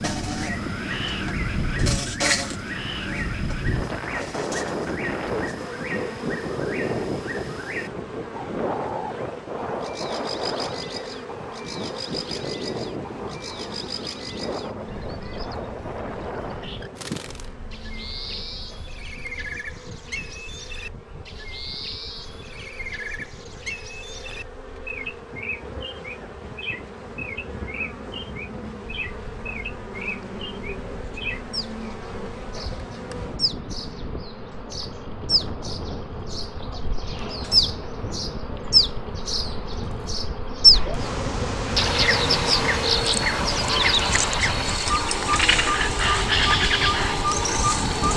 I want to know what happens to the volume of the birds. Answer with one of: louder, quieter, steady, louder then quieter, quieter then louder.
louder.